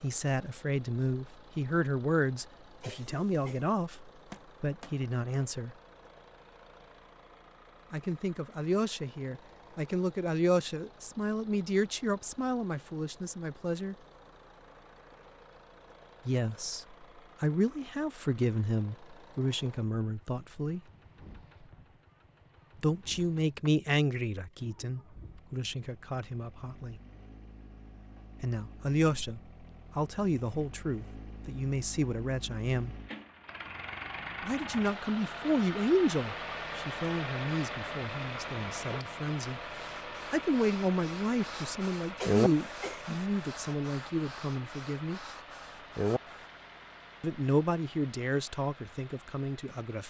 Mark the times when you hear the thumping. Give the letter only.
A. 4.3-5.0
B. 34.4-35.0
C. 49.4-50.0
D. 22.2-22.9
A.